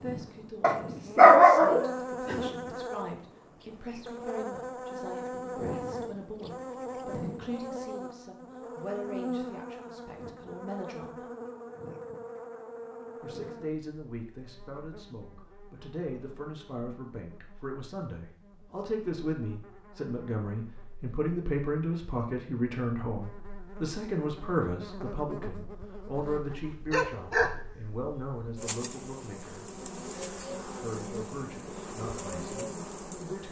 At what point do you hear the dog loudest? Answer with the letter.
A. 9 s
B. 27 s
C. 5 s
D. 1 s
D.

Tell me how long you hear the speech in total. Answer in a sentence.
The speech can be heard for 30 seconds in total.